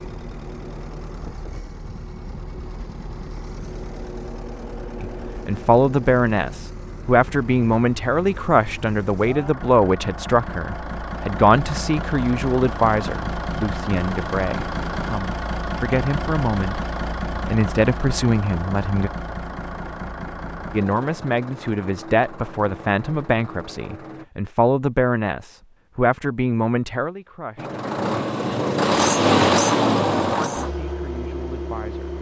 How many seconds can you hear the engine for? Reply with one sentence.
The engine can be heard for 29 seconds in total.